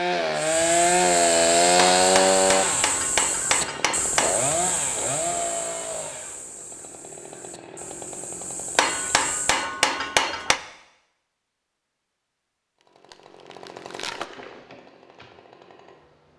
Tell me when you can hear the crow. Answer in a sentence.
The crow can be heard from 0.3 to 9.7 s.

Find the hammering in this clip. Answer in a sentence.
You can hear the hammering from 1.8 to 4.5 s and from 8.8 to 10.6 s.